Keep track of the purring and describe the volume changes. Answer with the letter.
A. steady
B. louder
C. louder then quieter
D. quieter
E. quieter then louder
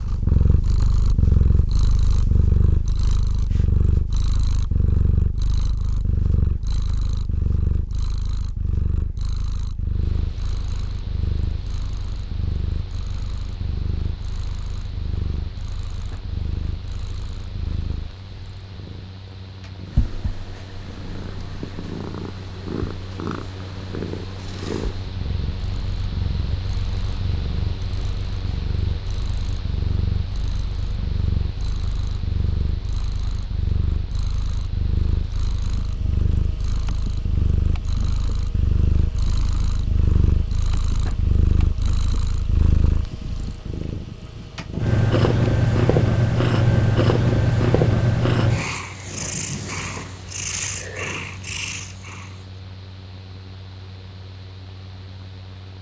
E.